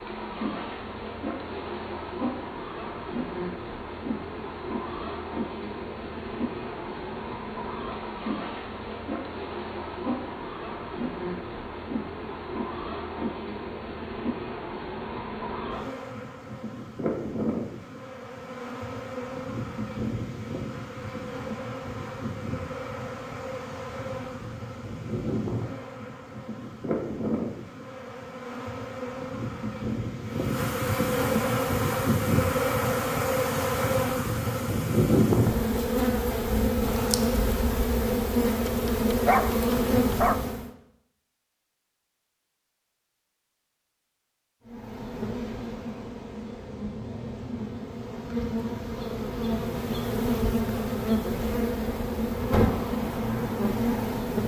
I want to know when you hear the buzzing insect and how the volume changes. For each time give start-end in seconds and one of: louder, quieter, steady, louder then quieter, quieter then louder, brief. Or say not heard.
0.0-40.7 louder
44.6-54.4 louder.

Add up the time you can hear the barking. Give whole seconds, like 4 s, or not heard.
2 s.